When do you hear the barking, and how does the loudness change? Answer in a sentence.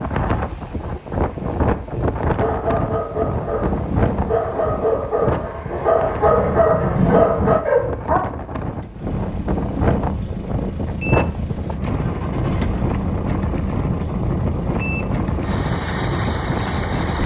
You can hear the barking from 2.2 to 8.2 s, getting louder.